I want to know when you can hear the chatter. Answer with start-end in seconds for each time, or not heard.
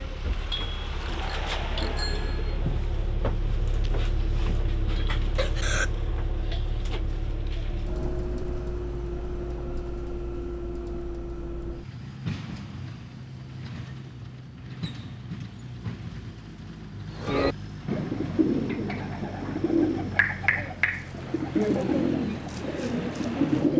not heard.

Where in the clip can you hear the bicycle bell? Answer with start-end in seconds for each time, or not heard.
1.1-2.5.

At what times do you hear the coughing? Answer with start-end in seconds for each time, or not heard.
5.3-5.9.